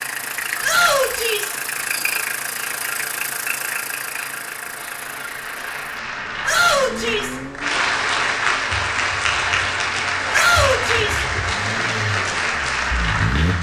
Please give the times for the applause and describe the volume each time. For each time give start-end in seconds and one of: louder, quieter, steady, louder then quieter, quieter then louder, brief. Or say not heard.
0.0-13.5 louder.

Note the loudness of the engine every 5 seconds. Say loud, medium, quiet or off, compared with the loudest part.
loud, medium, loud.